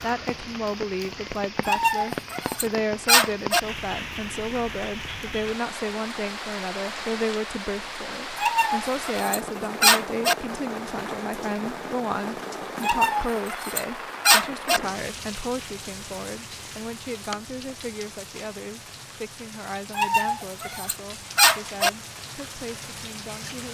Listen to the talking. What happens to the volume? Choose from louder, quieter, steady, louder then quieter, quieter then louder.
quieter.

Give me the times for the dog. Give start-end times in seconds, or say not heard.
1.6-3.6, 8.3-10.3, 12.8-14.8, 19.9-21.9.